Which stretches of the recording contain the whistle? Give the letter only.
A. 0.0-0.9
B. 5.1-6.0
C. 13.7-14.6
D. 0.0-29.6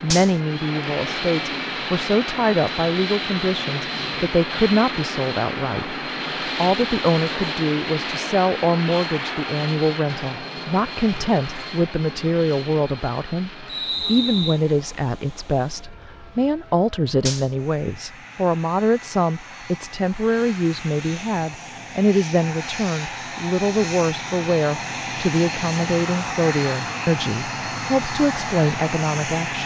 C.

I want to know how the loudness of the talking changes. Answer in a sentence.
The loudness of the talking stays about the same.